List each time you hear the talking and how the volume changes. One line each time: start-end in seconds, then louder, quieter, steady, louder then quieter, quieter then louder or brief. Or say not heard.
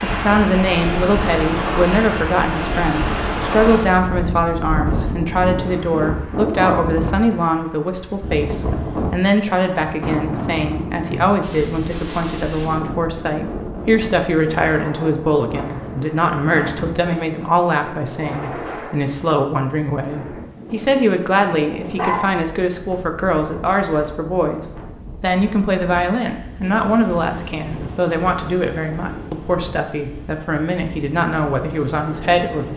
0.0-32.7 steady.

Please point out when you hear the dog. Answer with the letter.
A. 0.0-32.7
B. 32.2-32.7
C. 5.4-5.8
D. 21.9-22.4
D.